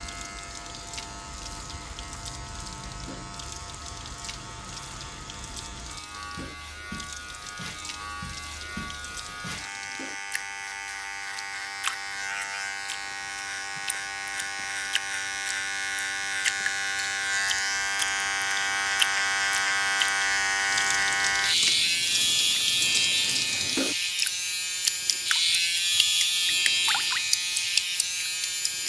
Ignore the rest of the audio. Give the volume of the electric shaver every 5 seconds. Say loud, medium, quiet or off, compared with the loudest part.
quiet, quiet, medium, loud, loud, loud.